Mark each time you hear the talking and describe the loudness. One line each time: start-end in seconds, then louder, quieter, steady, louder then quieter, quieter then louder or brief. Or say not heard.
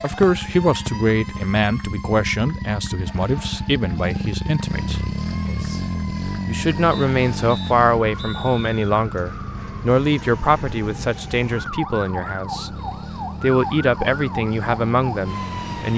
0.0-5.8 quieter
6.5-12.7 quieter
13.4-15.9 brief.